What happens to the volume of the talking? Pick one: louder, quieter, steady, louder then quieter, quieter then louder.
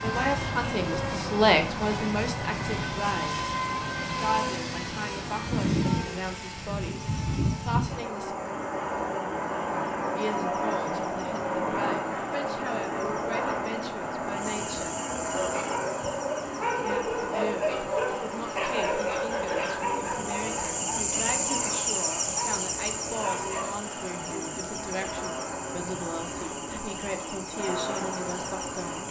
quieter.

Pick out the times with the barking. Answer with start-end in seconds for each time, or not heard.
15.3-23.9.